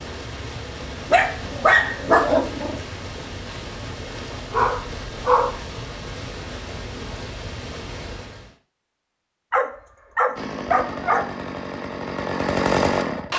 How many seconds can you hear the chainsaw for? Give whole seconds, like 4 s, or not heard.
3 s.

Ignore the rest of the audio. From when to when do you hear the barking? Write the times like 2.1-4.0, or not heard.
1.1-2.8, 4.5-5.6, 9.5-11.2.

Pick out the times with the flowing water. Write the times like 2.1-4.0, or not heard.
0.0-8.6.